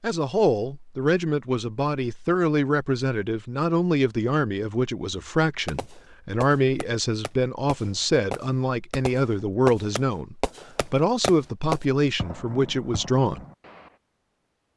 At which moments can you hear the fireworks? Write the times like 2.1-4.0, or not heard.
5.7-13.9.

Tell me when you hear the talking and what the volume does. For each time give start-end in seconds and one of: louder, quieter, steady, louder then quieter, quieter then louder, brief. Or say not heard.
0.0-13.4 steady.